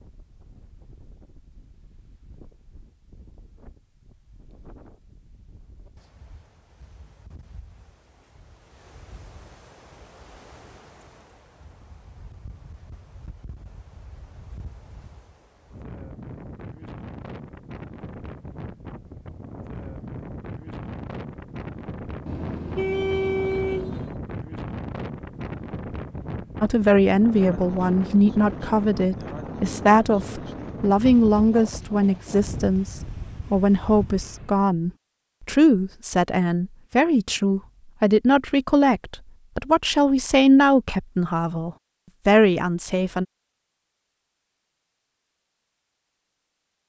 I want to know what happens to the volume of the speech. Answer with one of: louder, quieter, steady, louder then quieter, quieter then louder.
steady.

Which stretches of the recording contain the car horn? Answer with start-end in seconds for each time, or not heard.
22.2-24.1.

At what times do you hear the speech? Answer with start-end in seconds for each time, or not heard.
26.6-43.2.